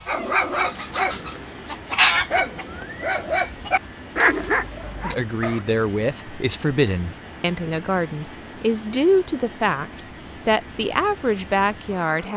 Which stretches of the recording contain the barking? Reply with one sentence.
The barking can be heard from 0.1 to 5.6 s.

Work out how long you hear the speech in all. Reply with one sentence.
You can hear the speech for 7 seconds altogether.